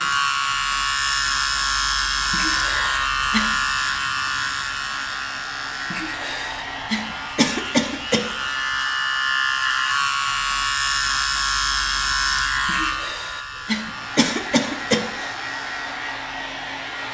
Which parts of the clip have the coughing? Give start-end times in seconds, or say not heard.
2.3-3.5, 5.9-8.6, 12.7-15.3.